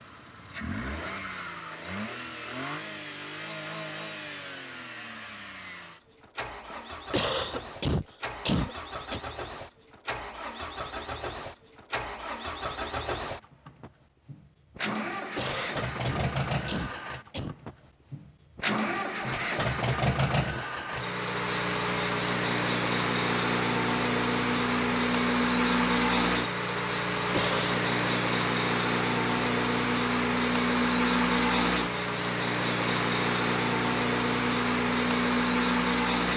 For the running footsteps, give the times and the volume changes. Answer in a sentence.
The running footsteps can't be heard in this clip.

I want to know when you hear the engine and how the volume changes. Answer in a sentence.
You can hear the engine from 0.0 to 36.3 s, getting louder.